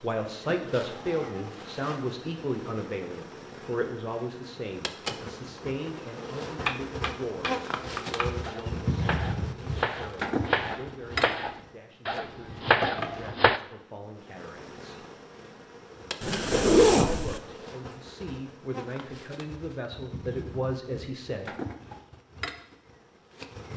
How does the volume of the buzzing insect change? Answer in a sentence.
The loudness of the buzzing insect goes up, then down.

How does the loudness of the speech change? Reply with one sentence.
The volume of the speech goes down, then up.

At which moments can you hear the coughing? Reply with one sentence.
You can't hear the coughing here.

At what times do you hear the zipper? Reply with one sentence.
The zipper can be heard from 16.2 to 17.4 s.